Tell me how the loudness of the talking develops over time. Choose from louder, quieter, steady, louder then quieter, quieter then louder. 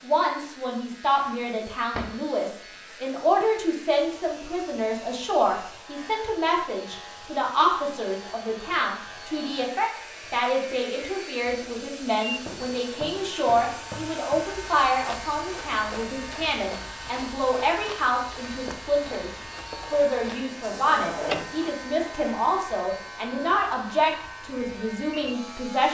steady.